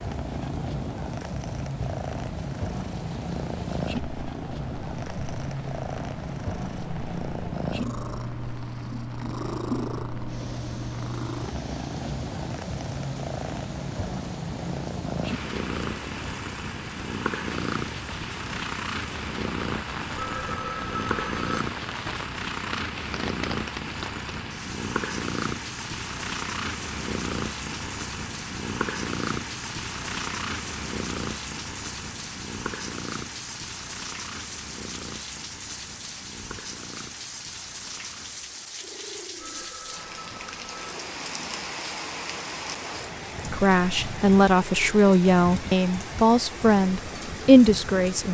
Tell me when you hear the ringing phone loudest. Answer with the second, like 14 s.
21 s.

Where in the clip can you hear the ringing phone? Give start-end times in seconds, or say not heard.
20.1-21.6, 39.4-41.0.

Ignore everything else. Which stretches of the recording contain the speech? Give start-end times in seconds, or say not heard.
43.5-48.2.